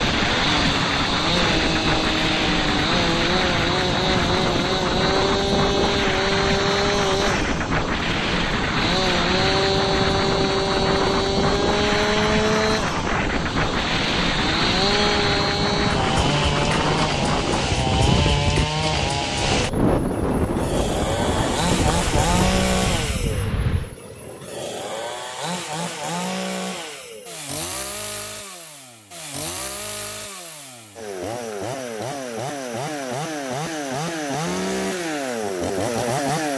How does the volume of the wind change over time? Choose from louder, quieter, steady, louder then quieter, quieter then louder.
steady.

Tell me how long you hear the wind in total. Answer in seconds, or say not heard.
24 s.